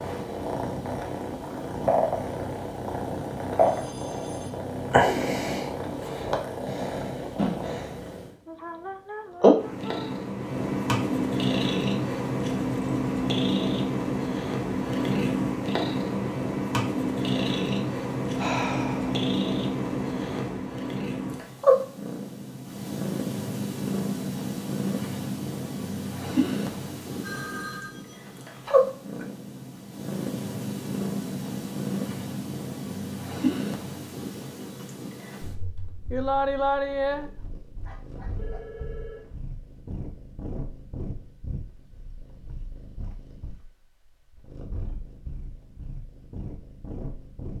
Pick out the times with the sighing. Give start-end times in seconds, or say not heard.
8.4-10.2, 18.4-19.2, 36.1-37.3.